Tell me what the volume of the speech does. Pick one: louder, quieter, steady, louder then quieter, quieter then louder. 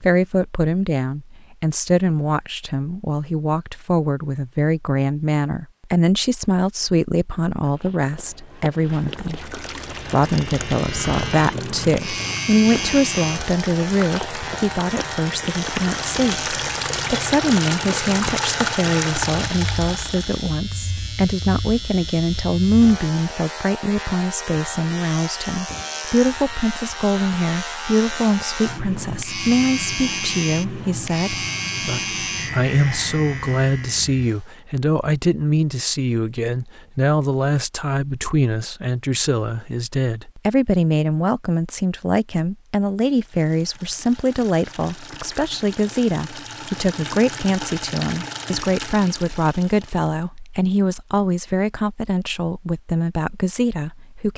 steady.